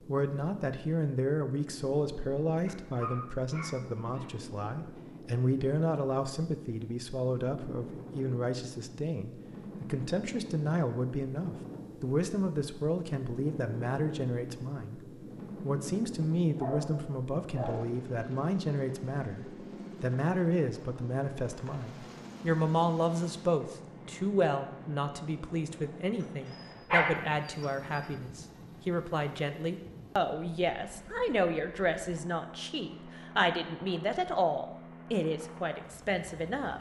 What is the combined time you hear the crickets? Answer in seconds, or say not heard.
not heard.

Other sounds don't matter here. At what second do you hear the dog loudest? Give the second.
27 s.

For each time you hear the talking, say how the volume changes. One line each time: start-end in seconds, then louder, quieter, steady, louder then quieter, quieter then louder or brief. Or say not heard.
0.1-36.7 steady.